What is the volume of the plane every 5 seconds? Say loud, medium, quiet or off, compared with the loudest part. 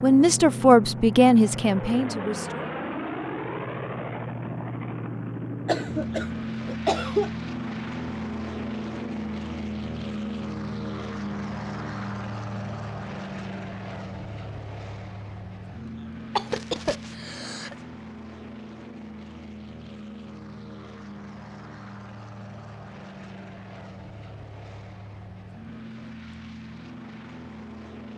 loud, loud, loud, medium, medium, medium.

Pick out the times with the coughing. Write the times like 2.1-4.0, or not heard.
5.7-7.3, 16.4-17.8.